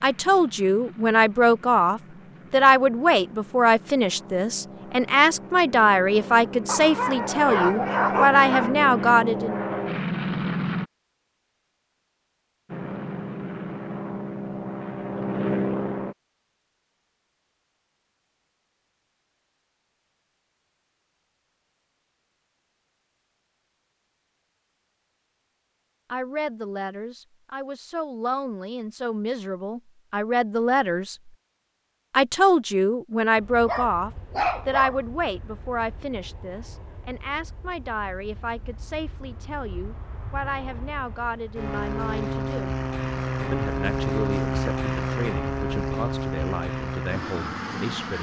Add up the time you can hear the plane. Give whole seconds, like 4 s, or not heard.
29 s.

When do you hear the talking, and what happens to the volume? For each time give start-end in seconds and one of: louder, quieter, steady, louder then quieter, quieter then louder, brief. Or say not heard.
0.0-9.6 steady
26.1-31.3 louder
32.1-42.7 quieter
43.5-48.1 steady.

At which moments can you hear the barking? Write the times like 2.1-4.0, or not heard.
6.7-8.7, 33.6-35.0.